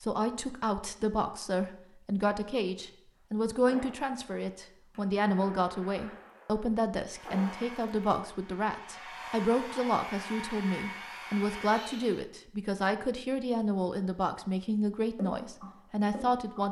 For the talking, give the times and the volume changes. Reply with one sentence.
The talking can be heard from 0.0 to 16.6 s, at a steady volume.